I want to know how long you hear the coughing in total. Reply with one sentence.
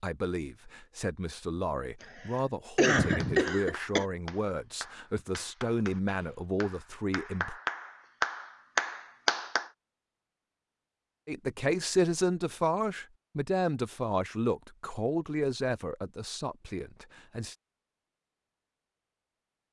You can hear the coughing for 2 seconds altogether.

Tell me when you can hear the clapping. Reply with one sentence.
The clapping can be heard from 3.2 to 9.7 s.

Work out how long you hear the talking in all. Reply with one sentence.
You can hear the talking for 14 seconds altogether.